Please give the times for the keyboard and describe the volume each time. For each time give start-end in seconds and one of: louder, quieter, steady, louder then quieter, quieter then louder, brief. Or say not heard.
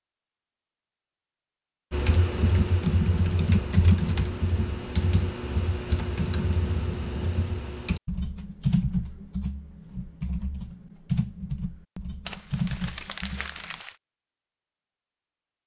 1.9-13.8 quieter.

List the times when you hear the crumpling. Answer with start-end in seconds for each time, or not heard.
12.2-13.9.